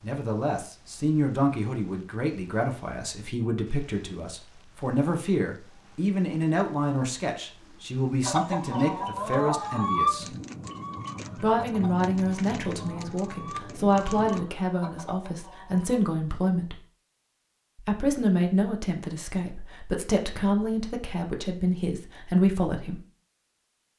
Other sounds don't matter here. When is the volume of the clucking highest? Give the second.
10 s.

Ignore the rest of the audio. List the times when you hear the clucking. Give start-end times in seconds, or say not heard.
8.2-16.1.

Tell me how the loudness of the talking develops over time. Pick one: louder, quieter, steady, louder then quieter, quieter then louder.
steady.